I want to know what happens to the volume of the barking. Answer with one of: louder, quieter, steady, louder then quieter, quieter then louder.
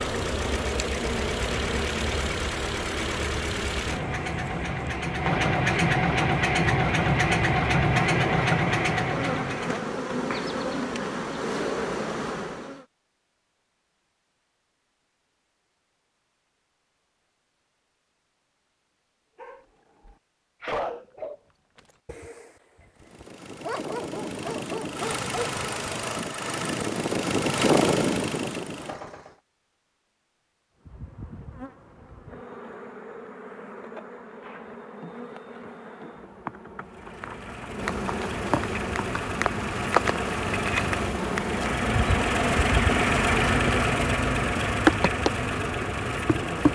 quieter then louder.